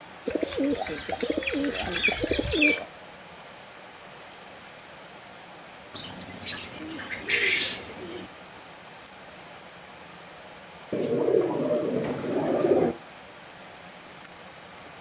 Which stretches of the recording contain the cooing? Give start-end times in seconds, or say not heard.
0.2-2.9, 6.0-8.2, 10.9-12.9.